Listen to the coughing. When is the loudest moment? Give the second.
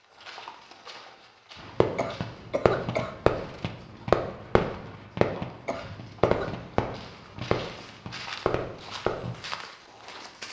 3 s.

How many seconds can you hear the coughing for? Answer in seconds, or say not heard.
2 s.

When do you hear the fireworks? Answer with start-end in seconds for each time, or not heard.
1.6-9.4.